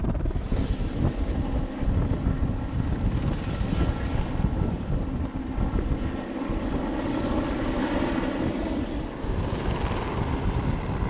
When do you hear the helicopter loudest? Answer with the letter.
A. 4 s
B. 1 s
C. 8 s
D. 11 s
C.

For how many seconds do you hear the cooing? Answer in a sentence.
You can't hear the cooing here.